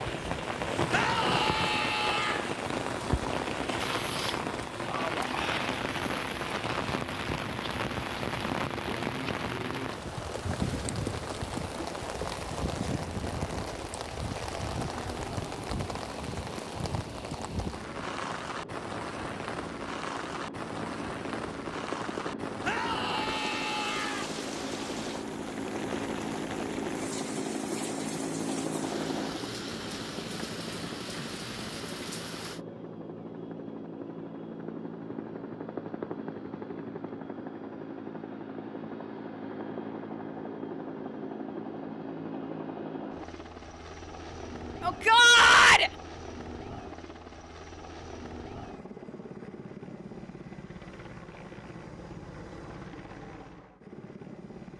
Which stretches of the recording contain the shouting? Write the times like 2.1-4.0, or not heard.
0.9-2.5, 22.6-24.3, 44.8-45.9.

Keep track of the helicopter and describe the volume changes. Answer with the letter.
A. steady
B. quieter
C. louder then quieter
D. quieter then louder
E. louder
C.